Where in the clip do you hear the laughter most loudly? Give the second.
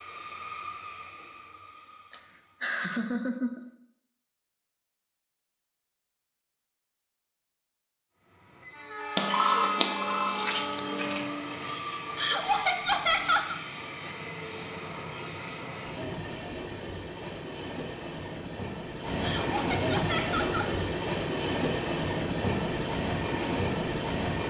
13 s.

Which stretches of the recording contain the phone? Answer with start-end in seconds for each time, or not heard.
9.2-11.3.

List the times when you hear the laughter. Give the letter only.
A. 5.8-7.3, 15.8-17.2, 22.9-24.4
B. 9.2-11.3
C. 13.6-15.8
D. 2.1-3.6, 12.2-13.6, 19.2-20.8
D.